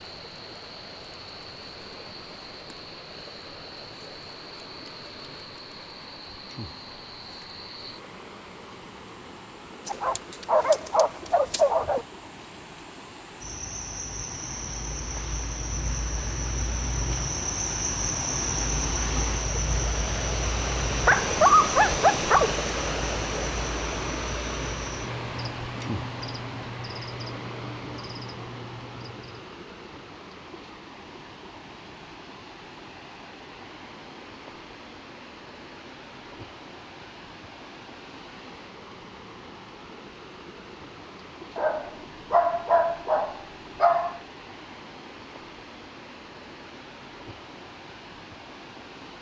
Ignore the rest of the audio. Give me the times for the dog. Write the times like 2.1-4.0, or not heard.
9.8-12.1, 21.0-22.6, 41.5-44.2.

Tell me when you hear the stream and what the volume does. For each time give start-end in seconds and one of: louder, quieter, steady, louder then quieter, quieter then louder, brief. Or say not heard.
0.0-49.1 louder then quieter.